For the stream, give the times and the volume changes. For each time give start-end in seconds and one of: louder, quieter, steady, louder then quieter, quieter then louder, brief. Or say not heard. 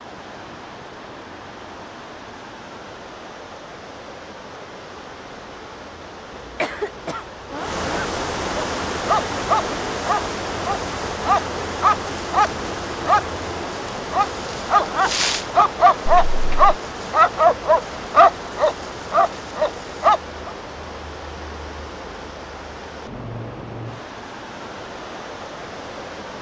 0.0-26.3 louder then quieter.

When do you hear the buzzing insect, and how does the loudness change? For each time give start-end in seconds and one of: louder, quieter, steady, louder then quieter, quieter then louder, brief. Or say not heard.
not heard.